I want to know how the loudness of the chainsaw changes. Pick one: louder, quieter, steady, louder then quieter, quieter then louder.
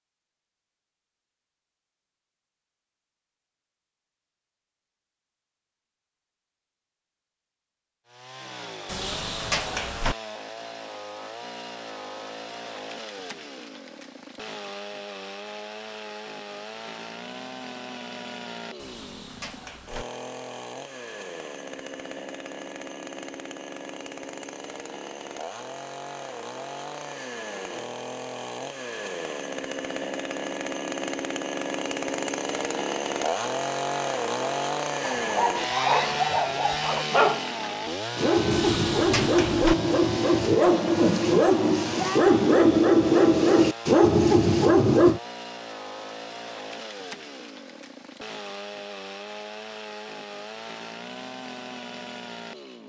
louder then quieter.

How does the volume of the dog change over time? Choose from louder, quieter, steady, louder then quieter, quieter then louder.
louder.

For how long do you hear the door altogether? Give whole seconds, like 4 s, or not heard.
4 s.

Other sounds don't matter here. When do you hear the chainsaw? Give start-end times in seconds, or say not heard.
8.1-52.8.